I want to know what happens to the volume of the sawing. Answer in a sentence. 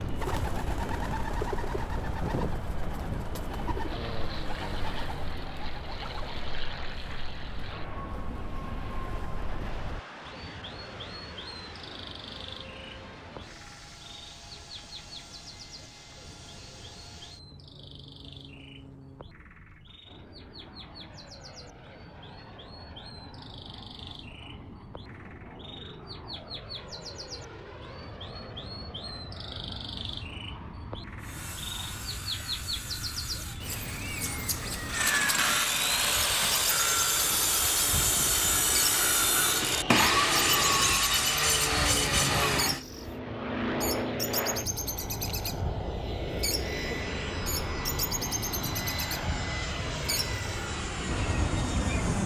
The loudness of the sawing goes up.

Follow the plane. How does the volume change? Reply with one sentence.
The volume of the plane goes down, then up.